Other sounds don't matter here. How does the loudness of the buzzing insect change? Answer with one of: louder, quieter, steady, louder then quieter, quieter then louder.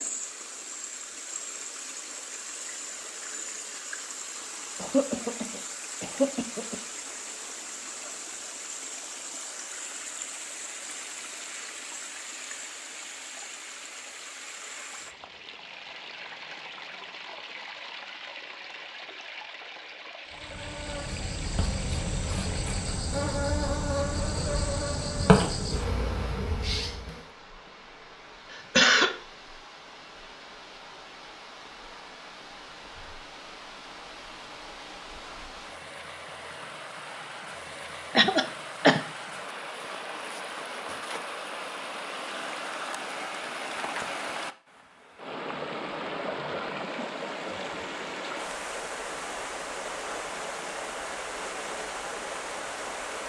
louder then quieter.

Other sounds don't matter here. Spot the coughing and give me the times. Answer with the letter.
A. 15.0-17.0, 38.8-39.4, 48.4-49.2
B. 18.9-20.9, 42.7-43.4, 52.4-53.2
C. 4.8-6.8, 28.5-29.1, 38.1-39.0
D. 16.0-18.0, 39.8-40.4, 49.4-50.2
C.